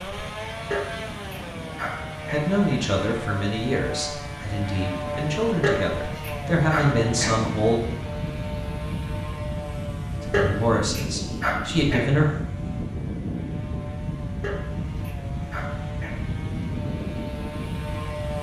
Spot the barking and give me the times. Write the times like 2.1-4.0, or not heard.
0.7-2.5, 5.6-7.4, 10.3-12.2, 14.4-16.2.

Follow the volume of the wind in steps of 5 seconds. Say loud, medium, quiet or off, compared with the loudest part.
medium, loud, loud, loud.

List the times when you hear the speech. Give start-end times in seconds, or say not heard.
2.3-7.8, 10.2-12.3.